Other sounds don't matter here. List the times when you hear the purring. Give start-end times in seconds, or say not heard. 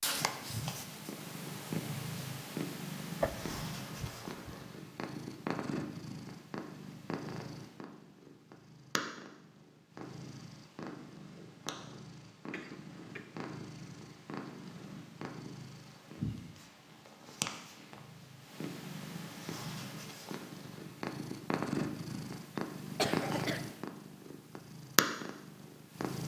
0.0-26.2.